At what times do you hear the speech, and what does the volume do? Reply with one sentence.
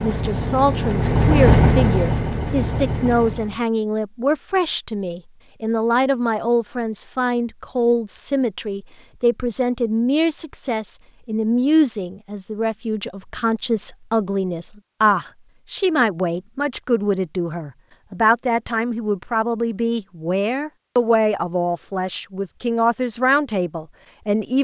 The speech can be heard from 0.0 to 24.5 s, at a steady volume.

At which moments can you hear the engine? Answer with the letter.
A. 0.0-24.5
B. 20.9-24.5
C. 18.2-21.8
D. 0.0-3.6
D.